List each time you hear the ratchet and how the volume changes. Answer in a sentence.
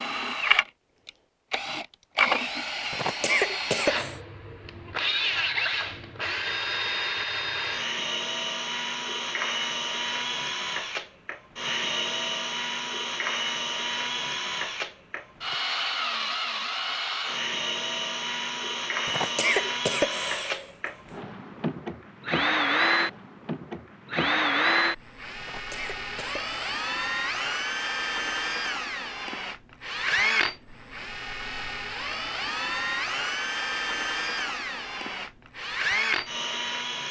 The ratchet can't be heard in this clip.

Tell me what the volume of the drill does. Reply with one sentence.
The loudness of the drill stays about the same.